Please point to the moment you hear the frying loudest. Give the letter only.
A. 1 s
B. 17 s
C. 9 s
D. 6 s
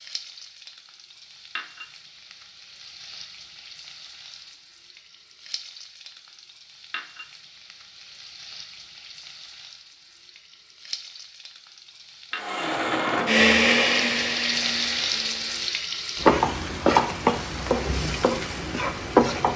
B.